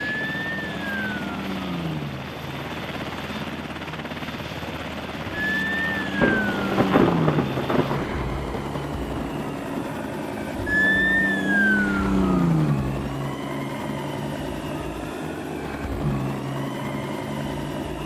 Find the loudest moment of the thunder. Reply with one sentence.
The loudest moment of the thunder is at 7 seconds.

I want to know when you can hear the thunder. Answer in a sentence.
You can hear the thunder from 6.2 to 9.9 s.